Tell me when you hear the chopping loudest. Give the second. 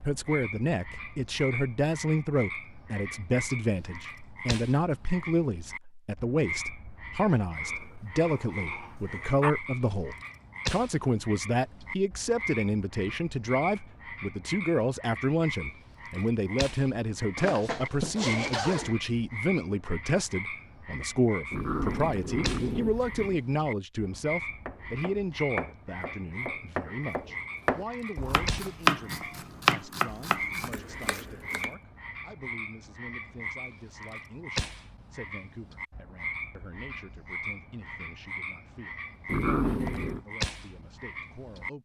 29 s.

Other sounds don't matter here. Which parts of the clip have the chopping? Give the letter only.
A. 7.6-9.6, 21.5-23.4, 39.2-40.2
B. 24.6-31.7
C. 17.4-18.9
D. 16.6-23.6
B.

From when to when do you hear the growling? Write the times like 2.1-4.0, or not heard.
7.6-9.6, 21.5-23.4, 39.2-40.2.